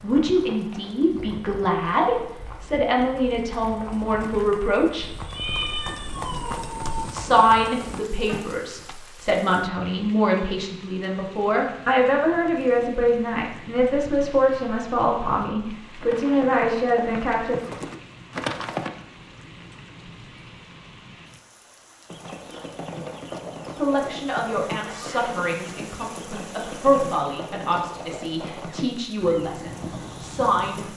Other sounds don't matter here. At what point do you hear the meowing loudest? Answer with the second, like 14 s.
6 s.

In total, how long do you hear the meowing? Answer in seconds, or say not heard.
2 s.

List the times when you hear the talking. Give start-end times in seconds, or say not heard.
0.0-5.0, 7.1-17.6, 23.8-30.9.